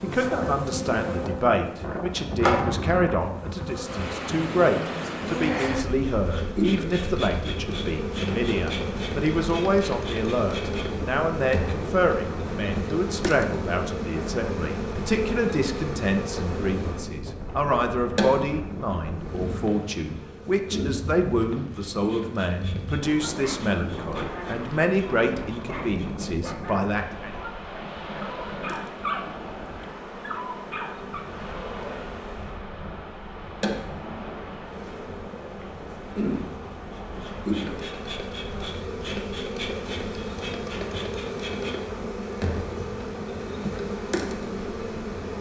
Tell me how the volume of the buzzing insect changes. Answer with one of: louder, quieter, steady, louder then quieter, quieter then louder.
quieter then louder.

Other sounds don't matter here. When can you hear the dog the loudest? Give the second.
29 s.